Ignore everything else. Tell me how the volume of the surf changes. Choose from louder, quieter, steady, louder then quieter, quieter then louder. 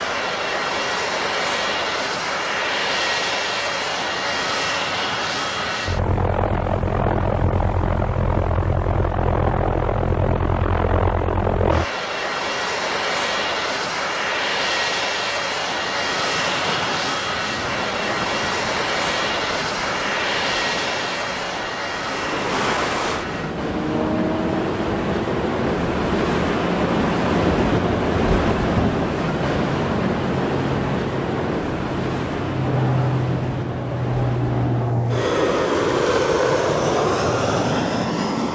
louder then quieter.